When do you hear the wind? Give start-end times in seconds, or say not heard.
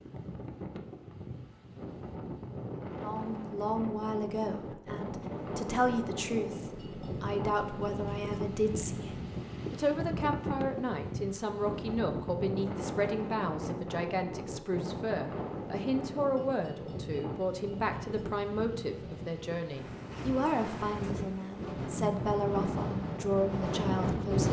0.0-24.4.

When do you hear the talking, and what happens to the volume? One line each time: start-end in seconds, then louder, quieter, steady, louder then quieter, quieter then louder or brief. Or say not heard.
3.0-24.4 steady.